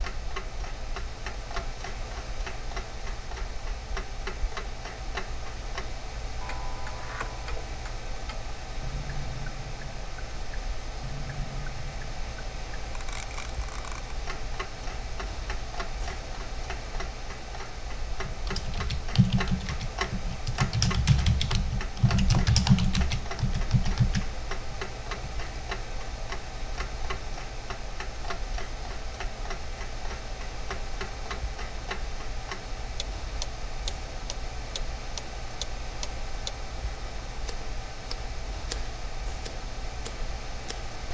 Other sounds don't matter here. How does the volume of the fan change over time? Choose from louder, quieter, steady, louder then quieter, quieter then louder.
steady.